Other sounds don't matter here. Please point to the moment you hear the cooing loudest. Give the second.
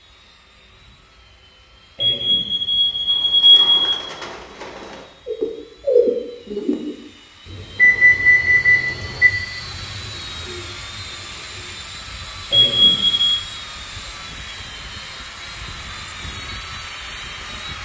6 s.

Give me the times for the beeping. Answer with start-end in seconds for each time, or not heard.
2.0-4.0, 7.8-9.3, 12.5-13.4.